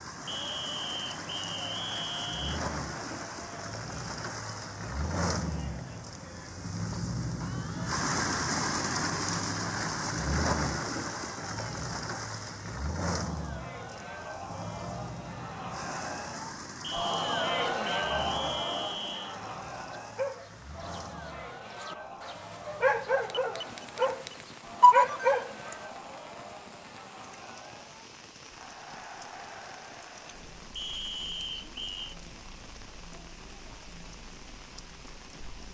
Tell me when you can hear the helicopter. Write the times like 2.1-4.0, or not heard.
not heard.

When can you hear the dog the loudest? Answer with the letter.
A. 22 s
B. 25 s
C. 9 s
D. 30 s
B.